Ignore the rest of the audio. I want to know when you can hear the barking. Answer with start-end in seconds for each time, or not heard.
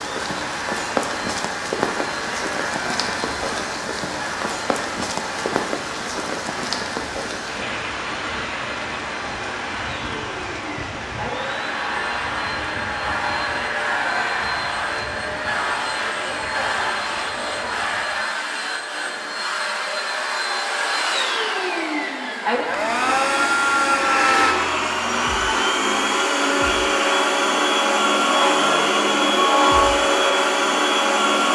not heard.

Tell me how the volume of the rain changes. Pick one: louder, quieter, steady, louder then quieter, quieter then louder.
quieter.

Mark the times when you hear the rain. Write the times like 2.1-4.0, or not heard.
0.0-18.2.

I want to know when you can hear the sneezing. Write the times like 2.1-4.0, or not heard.
not heard.